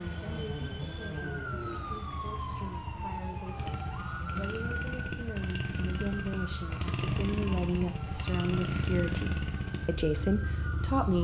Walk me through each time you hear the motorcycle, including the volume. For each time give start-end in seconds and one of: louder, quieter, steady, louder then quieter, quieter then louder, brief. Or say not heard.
0.0-11.1 louder.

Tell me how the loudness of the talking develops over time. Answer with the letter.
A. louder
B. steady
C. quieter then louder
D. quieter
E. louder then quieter
A.